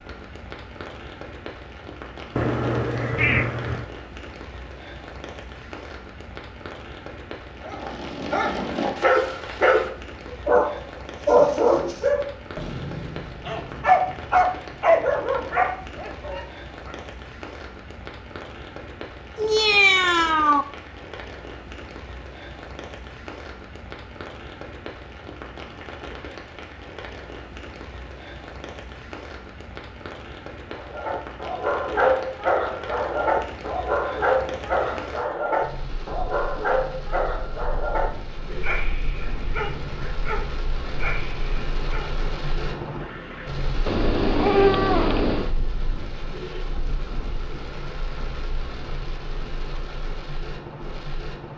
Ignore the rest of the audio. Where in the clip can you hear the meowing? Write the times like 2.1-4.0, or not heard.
2.4-3.9, 19.4-20.6, 43.9-45.5.